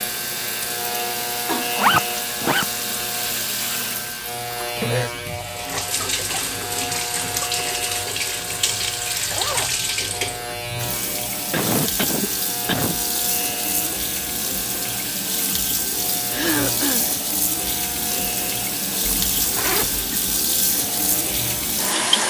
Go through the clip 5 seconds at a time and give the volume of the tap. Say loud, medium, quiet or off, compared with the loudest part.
medium, loud, medium, loud, loud.